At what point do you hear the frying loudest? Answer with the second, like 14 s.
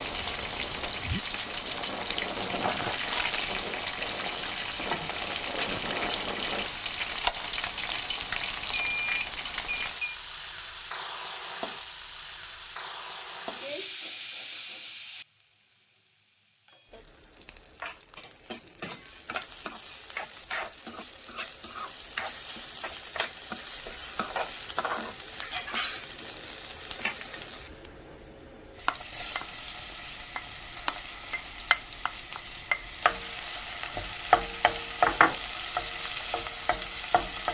35 s.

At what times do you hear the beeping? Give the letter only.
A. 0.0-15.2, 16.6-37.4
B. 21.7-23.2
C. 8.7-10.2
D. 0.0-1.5
C.